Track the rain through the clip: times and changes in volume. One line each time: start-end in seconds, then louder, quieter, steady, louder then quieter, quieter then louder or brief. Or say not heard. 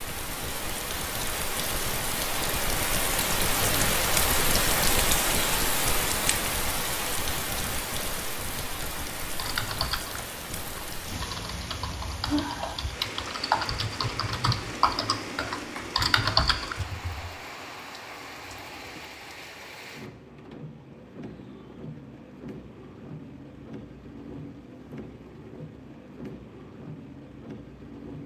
0.0-28.2 quieter.